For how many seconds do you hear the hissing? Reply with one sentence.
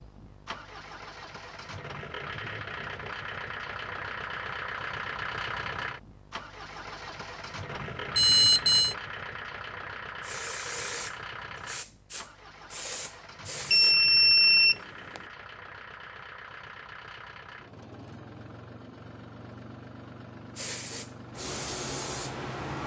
You can hear the hissing for 6 seconds altogether.